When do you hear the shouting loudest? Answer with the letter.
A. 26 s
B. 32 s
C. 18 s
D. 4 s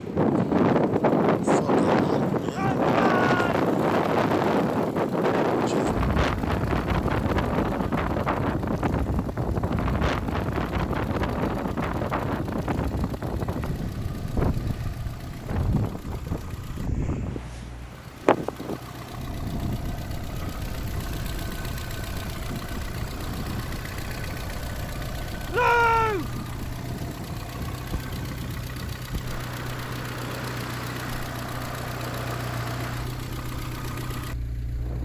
A.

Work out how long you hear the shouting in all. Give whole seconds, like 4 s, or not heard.
2 s.